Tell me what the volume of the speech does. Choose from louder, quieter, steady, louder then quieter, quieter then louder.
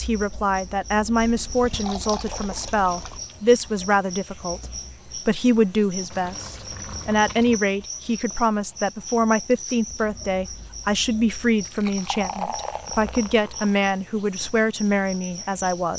steady.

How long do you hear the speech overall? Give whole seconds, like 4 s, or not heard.
16 s.